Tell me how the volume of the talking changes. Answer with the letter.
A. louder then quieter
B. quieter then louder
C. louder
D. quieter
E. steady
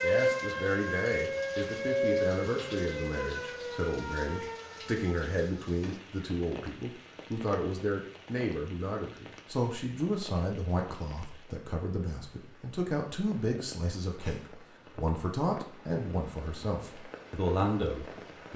E.